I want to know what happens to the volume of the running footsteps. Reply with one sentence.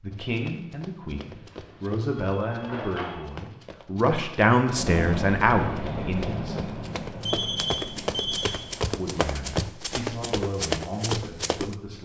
The loudness of the running footsteps goes up.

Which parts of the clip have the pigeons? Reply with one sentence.
You can't hear the pigeons here.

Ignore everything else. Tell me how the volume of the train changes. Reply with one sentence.
The volume of the train goes down.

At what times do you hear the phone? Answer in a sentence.
The phone can be heard from 1.3 to 3.3 s and from 7.2 to 8.6 s.